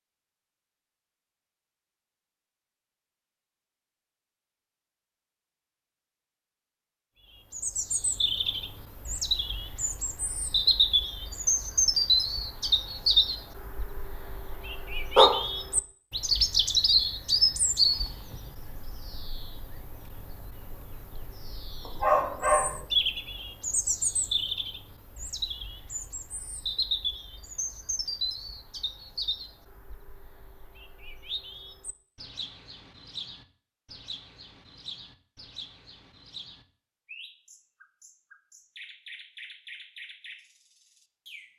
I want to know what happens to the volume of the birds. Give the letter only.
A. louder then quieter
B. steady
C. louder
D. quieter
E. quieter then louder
D.